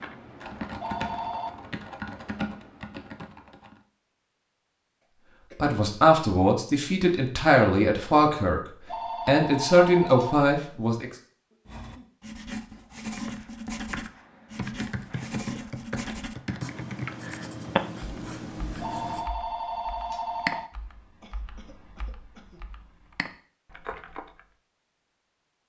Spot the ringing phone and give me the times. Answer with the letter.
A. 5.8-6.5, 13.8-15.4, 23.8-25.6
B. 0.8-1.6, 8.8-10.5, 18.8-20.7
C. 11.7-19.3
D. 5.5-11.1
B.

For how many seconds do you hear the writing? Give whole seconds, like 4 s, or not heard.
8 s.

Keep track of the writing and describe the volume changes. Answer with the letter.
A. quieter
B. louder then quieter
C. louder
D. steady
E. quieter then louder
D.